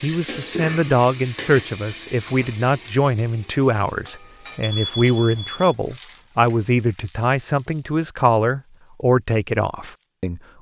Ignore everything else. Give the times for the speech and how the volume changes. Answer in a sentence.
The speech can be heard from 0.0 to 10.4 s, at a steady volume.